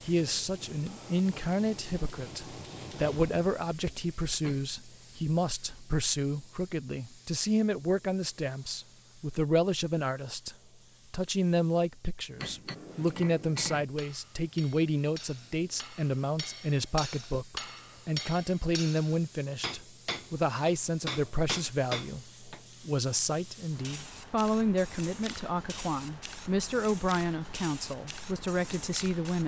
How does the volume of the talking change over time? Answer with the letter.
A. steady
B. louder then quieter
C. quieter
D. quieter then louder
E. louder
A.